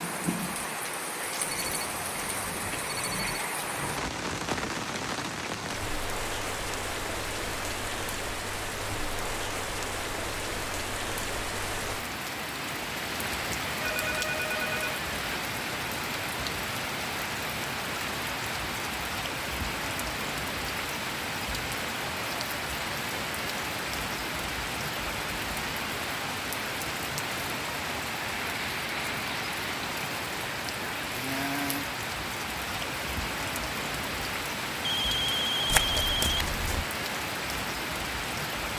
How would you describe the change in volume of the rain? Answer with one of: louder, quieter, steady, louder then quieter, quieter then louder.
steady.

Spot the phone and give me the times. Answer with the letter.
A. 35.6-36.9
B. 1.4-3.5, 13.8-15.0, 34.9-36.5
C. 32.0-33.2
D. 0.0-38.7
B.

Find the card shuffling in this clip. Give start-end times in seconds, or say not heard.
35.6-36.9.